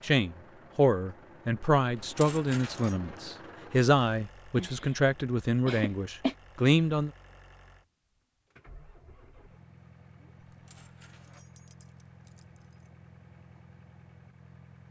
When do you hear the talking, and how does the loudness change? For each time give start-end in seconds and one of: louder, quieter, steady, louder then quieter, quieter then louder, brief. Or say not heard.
0.0-7.1 steady.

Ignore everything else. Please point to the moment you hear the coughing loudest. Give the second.
6 s.